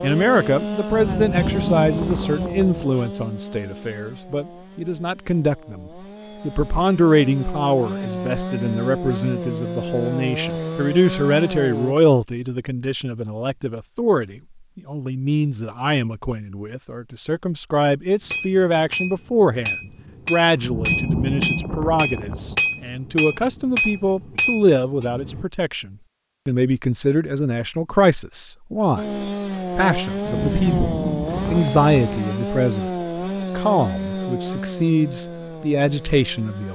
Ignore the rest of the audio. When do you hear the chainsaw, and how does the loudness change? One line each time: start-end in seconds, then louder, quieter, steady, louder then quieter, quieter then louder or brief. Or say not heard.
0.0-11.9 quieter then louder
28.9-36.6 quieter.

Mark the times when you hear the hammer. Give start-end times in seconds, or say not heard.
18.2-25.4.